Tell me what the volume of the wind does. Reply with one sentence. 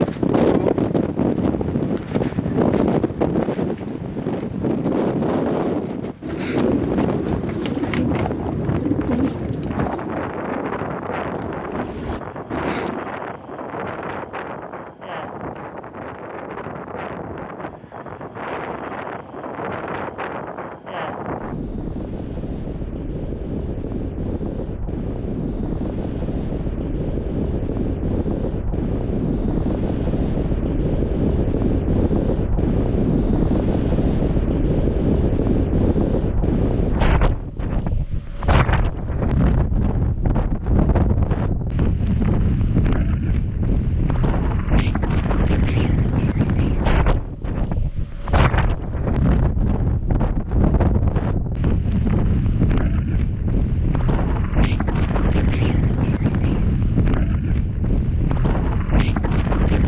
The loudness of the wind goes down, then up.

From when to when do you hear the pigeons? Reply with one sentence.
You can hear the pigeons from 6.2 to 13.1 s.